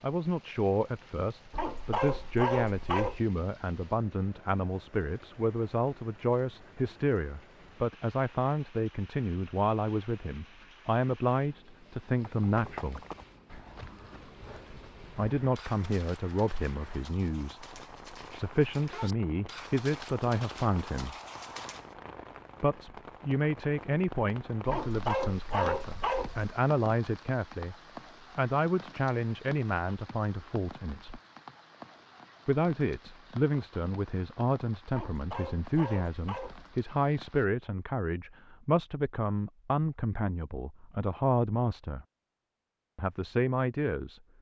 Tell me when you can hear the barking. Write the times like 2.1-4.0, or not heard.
1.5-3.2, 24.6-26.6, 34.9-36.8.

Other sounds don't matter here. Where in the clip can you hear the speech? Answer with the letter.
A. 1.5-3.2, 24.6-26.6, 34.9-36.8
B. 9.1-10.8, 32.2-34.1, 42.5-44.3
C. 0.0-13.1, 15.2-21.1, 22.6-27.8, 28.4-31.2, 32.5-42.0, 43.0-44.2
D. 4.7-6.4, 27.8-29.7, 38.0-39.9
C.